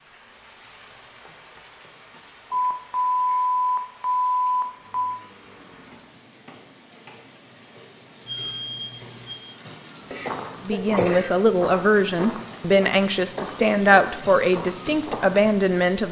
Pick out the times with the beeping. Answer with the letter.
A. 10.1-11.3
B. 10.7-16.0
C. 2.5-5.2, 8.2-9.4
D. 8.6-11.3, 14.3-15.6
C.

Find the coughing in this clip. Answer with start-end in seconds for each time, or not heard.
10.1-11.3.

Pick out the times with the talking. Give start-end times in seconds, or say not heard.
10.7-16.0.